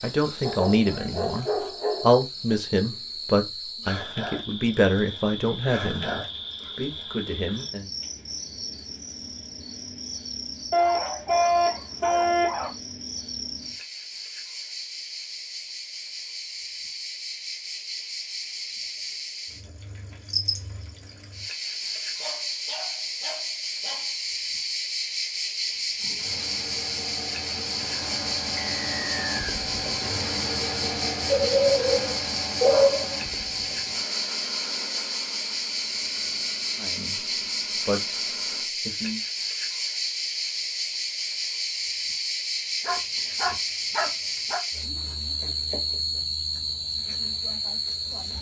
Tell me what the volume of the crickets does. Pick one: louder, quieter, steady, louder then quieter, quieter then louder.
louder.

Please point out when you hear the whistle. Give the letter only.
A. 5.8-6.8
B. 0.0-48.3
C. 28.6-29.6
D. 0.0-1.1
C.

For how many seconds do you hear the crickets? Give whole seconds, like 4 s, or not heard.
48 s.